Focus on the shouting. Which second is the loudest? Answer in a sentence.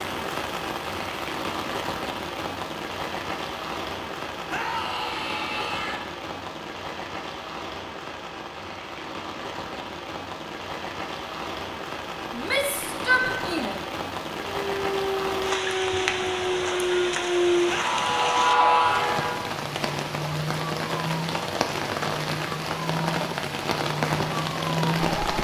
The loudest moment of the shouting is at 13 seconds.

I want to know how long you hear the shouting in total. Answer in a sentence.
You can hear the shouting for 5 seconds altogether.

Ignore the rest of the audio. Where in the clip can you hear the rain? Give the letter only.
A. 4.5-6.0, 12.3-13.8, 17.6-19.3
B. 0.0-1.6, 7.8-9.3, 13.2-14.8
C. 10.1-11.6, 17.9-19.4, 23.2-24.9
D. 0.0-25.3
D.